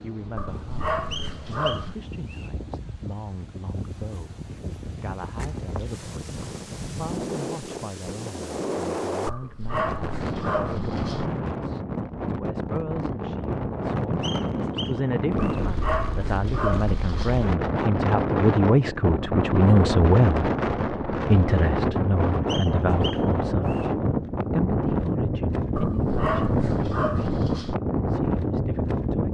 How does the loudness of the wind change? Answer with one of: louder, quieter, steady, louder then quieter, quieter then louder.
louder.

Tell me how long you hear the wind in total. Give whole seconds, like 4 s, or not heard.
29 s.